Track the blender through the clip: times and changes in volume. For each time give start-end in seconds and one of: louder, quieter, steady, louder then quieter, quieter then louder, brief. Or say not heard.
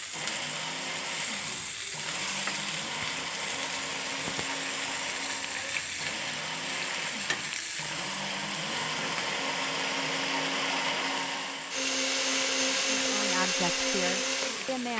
0.1-14.9 louder.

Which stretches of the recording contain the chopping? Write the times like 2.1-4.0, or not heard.
not heard.